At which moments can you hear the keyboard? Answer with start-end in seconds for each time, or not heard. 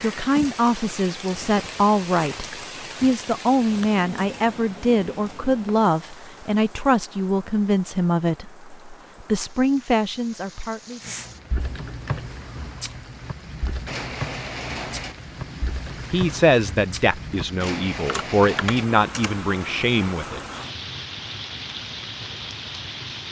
11.0-19.4.